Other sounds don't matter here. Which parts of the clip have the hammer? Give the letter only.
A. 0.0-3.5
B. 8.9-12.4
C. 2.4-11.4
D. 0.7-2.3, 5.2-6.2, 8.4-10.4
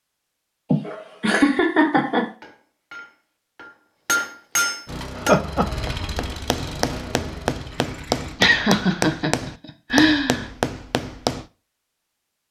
C.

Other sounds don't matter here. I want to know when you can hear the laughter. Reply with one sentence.
You can hear the laughter from 0.7 to 2.3 s, from 5.2 to 6.2 s and from 8.4 to 10.4 s.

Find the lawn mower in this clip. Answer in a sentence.
You can hear the lawn mower from 4.8 to 8.3 s.